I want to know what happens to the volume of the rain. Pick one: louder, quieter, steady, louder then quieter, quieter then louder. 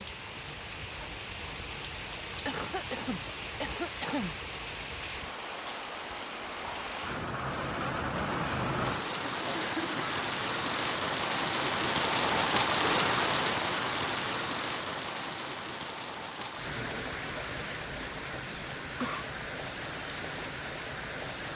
louder then quieter.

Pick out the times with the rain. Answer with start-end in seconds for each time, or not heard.
0.0-21.5.